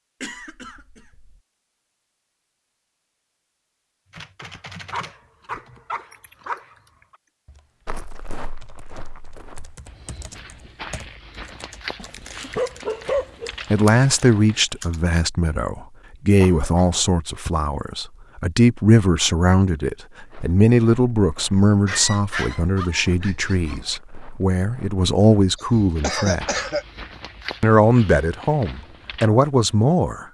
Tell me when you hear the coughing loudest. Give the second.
26 s.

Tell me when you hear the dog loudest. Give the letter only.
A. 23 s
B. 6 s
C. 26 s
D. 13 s
D.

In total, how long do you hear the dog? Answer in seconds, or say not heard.
6 s.